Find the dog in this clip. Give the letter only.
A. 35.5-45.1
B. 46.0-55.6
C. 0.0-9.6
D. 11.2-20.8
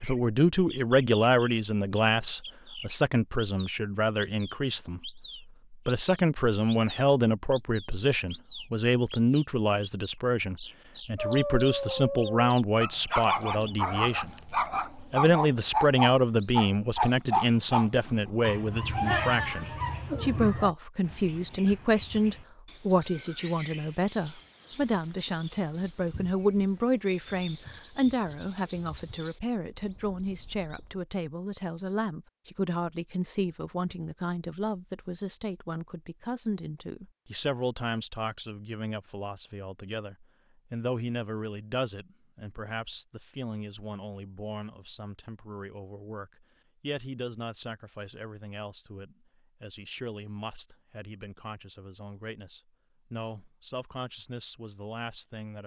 D.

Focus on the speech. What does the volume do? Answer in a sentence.
The volume of the speech goes down.